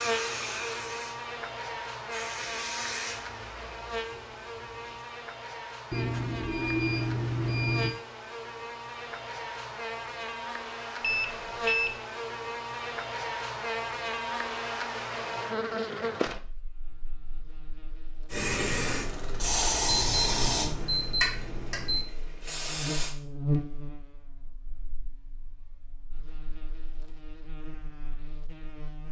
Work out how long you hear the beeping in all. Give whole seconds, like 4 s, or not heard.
5 s.